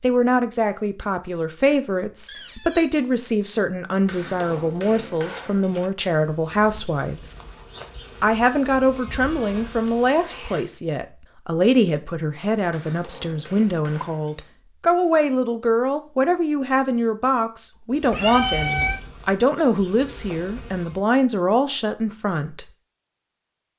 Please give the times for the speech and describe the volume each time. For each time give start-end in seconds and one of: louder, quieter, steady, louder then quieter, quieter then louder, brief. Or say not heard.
0.0-7.3 steady
8.2-22.6 steady.